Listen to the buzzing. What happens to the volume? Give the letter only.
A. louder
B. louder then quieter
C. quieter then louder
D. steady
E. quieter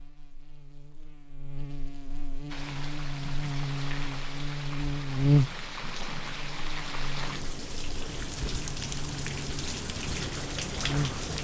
B.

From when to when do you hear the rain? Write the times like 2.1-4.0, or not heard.
2.5-11.3.